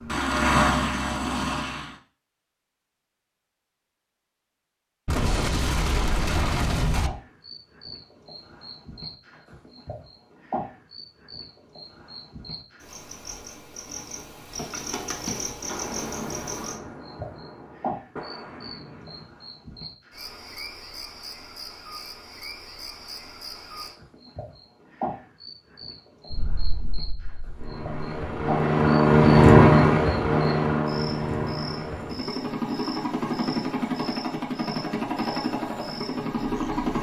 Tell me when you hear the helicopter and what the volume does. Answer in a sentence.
You can hear the helicopter briefly from 0.0 to 1.9 s; and from 27.6 to 36.9 s, getting quieter.